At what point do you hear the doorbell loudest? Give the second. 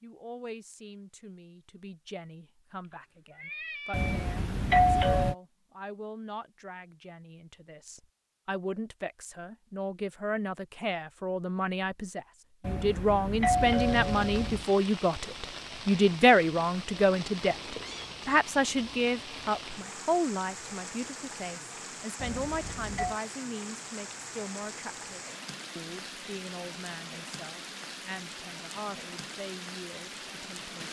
5 s.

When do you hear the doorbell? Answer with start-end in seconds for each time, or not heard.
3.9-5.3, 12.6-14.7, 22.2-23.2.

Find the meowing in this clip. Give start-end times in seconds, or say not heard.
2.9-4.2, 17.4-18.1.